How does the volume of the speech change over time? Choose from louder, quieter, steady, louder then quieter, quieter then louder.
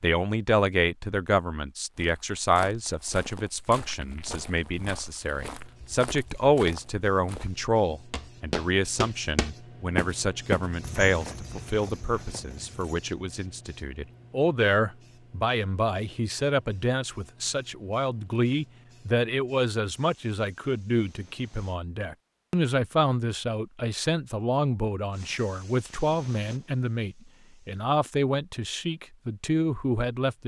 steady.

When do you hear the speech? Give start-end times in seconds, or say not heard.
0.0-30.4.